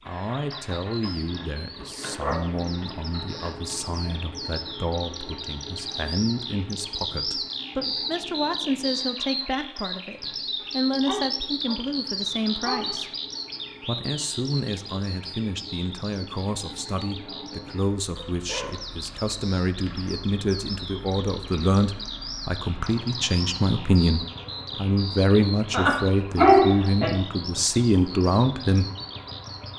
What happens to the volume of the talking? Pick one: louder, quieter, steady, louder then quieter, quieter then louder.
louder.